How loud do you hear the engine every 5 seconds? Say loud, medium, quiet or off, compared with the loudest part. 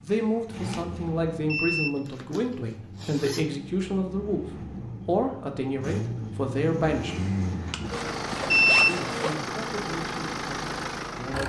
medium, loud, loud.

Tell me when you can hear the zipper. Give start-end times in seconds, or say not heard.
1.8-3.6, 7.9-9.4.